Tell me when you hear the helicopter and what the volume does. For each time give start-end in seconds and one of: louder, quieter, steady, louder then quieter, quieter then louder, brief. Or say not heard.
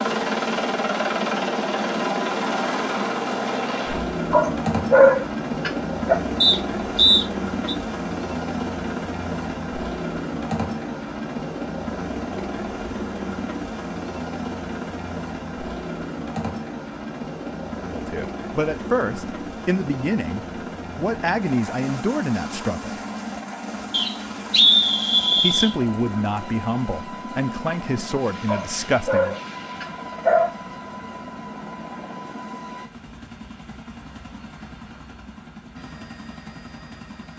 0.0-37.3 quieter.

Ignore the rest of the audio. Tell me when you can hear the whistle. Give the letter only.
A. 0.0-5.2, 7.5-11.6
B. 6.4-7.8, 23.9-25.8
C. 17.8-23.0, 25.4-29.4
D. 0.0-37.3
B.